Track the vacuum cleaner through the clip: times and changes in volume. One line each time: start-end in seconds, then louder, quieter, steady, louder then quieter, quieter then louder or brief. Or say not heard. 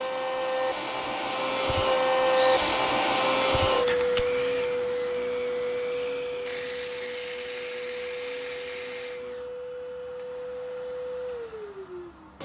0.0-12.3 quieter.